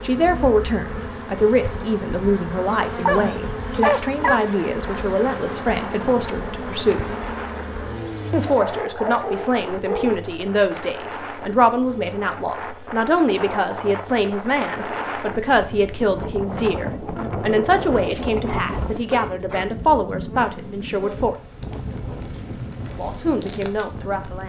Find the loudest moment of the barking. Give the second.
4 s.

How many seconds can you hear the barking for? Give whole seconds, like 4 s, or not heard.
5 s.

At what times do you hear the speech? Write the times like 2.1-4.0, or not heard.
0.0-7.0, 8.3-21.4, 22.9-24.4.